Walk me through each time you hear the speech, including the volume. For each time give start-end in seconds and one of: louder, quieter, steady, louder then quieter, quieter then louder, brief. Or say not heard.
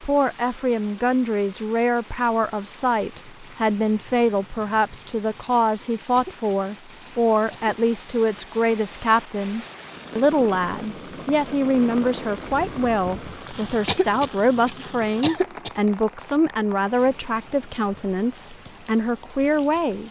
0.0-20.0 steady.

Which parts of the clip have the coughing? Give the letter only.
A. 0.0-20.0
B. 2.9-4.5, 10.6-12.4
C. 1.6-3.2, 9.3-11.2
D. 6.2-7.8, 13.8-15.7
D.